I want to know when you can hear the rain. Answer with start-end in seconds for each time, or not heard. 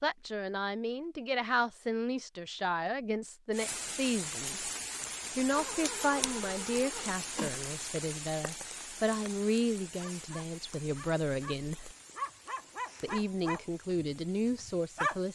3.5-15.2.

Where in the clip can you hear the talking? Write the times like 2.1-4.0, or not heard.
0.0-4.7, 5.3-11.9, 13.0-15.2.